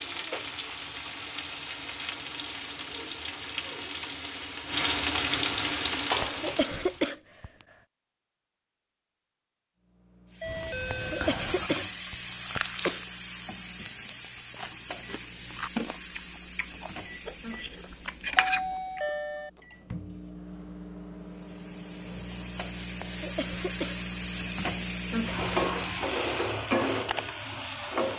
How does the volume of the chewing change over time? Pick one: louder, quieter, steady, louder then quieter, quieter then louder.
quieter then louder.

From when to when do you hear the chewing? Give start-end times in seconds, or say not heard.
10.4-19.0.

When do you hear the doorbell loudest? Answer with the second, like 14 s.
19 s.